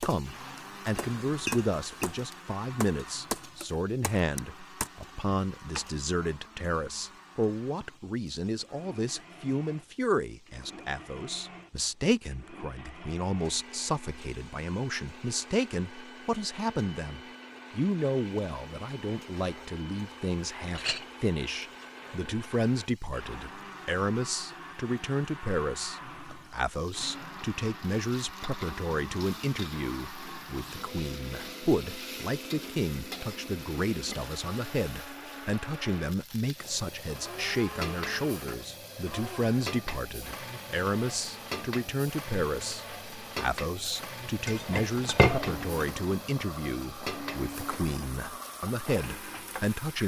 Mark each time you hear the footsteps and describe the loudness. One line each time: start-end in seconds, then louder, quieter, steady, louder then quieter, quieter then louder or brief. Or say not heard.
not heard.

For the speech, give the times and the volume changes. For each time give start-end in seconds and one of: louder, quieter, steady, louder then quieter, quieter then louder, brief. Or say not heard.
0.0-50.0 steady.